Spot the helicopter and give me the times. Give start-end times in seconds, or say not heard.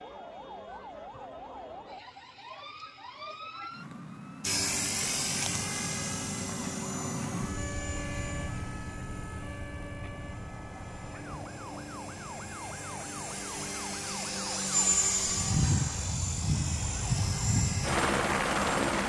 4.4-19.0.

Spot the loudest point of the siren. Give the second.
7 s.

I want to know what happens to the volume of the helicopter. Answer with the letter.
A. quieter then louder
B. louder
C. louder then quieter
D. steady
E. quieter
A.